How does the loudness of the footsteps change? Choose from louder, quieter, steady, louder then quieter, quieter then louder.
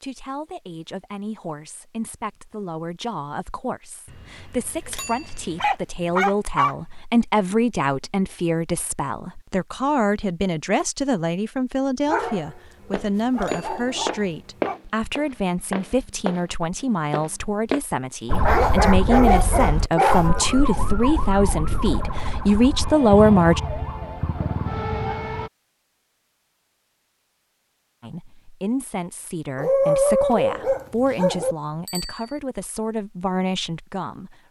quieter.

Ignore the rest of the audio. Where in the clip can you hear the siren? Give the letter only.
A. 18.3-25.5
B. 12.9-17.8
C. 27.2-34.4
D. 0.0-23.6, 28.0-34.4
A.